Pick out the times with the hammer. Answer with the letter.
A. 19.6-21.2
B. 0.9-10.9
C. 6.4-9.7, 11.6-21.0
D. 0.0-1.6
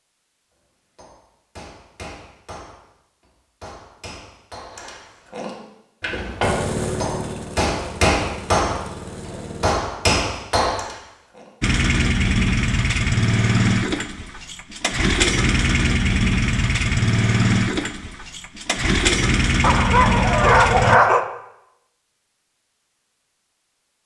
B.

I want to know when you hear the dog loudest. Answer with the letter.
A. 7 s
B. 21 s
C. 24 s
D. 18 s
B.